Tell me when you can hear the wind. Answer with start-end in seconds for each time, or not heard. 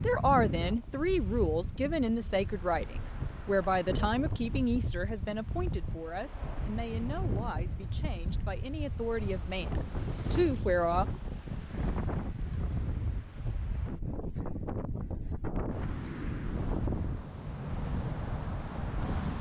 0.0-19.3.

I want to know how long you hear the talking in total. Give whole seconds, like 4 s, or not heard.
11 s.